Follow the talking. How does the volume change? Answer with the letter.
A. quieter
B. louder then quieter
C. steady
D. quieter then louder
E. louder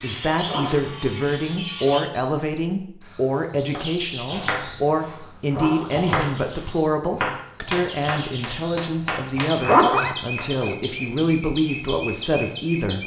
C.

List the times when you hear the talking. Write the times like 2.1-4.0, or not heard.
0.0-13.0.